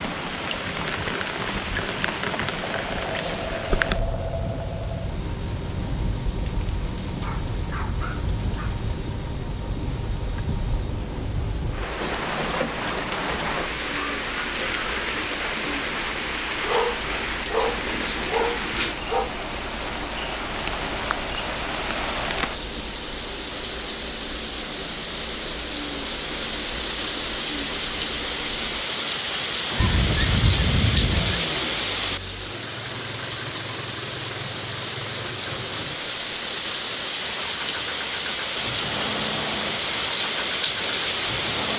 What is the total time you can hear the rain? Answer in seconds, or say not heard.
42 s.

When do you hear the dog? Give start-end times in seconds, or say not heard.
6.5-8.8, 16.6-19.3, 29.8-31.4.